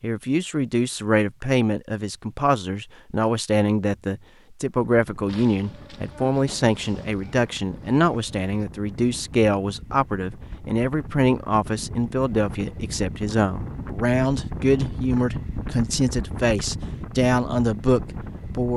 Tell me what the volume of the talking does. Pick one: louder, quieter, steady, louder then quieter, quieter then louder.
steady.